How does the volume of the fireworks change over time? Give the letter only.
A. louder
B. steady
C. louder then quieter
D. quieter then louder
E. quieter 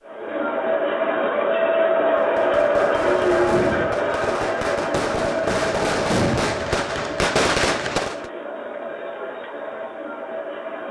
A.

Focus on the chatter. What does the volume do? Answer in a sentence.
The loudness of the chatter goes down.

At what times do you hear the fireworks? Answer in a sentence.
You can hear the fireworks from 2.1 to 8.2 s.